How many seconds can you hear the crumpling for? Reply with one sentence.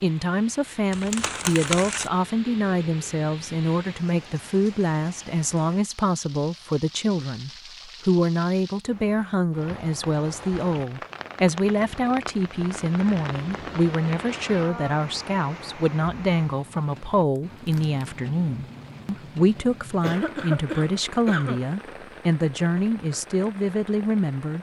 The crumpling can be heard for 2 seconds in total.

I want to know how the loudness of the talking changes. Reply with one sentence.
The loudness of the talking stays about the same.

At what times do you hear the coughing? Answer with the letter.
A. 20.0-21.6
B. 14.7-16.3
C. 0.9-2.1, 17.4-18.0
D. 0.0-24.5
A.